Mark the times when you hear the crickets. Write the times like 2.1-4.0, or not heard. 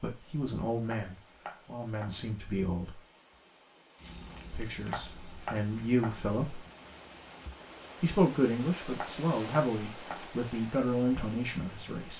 4.0-12.1.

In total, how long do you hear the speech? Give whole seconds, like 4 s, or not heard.
9 s.